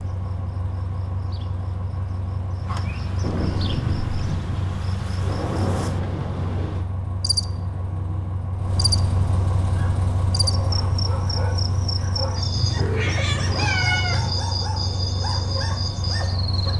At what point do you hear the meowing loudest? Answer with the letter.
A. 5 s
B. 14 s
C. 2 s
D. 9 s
B.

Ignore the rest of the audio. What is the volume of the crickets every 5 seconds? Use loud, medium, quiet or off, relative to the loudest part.
medium, loud, loud, loud.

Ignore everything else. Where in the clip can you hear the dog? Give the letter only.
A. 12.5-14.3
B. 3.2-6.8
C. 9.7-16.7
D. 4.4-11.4
C.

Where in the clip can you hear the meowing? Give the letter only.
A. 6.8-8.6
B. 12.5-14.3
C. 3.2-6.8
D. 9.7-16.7
B.